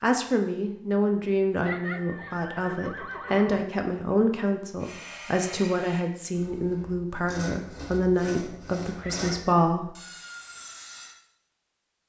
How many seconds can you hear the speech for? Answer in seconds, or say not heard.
10 s.